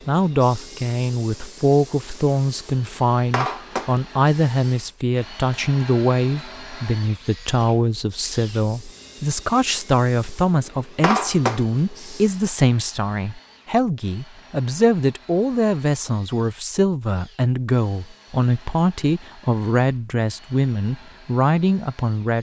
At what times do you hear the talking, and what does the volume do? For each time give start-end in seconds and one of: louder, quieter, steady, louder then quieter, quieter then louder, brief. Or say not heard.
0.1-22.3 steady.